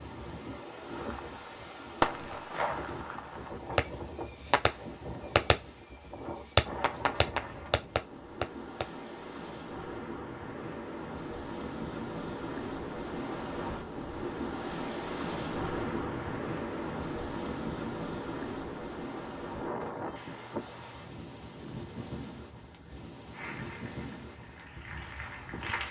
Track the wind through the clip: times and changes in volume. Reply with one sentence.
The wind can be heard from 0.0 to 25.8 s, getting louder then quieter.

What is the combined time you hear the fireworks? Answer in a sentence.
The fireworks can be heard for 8 seconds in total.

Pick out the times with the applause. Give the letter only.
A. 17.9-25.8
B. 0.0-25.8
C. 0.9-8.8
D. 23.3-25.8
D.